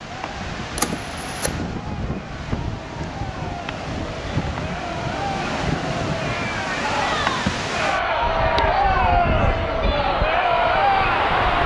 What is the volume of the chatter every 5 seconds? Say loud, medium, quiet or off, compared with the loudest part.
quiet, loud, loud.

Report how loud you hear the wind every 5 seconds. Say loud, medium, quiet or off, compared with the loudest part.
medium, loud, loud.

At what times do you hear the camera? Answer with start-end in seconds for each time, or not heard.
0.8-1.6.